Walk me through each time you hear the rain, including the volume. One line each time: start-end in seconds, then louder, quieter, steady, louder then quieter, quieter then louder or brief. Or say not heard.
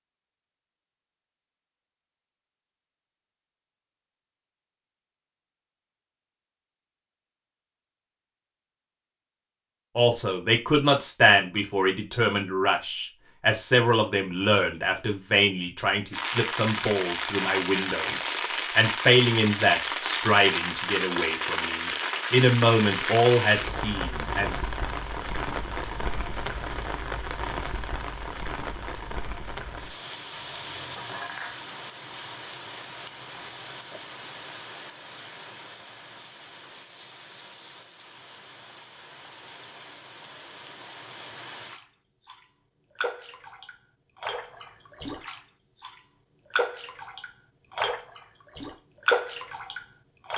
16.1-50.3 quieter then louder.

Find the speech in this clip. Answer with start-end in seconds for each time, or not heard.
9.9-24.6.